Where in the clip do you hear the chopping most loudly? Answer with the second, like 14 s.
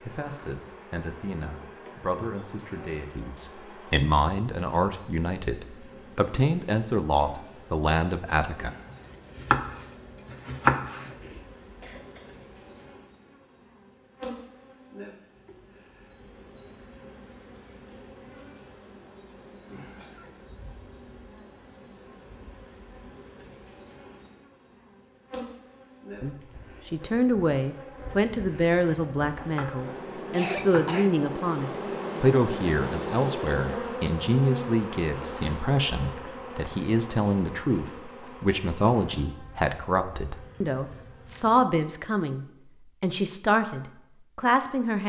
11 s.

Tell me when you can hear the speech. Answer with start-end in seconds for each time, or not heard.
0.0-8.7, 26.2-45.0.